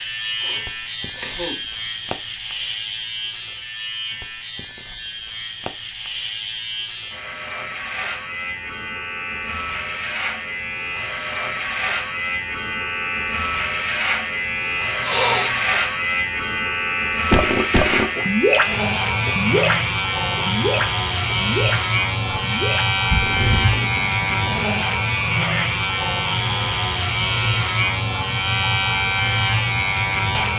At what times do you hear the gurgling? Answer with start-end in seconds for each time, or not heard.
17.3-25.1.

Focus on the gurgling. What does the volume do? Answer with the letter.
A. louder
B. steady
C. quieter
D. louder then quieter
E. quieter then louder
C.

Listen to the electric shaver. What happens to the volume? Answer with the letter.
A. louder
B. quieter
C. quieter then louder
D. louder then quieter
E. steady
A.